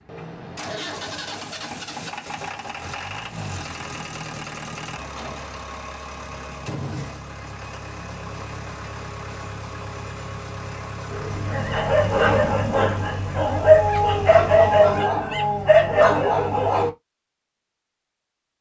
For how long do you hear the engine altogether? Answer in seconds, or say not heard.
15 s.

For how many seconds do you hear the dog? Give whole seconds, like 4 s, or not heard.
6 s.